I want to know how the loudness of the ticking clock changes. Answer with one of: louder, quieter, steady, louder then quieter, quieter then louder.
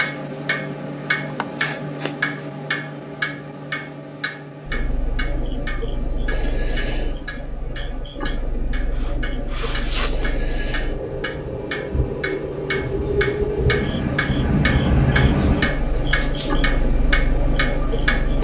quieter then louder.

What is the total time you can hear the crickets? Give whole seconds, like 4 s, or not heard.
14 s.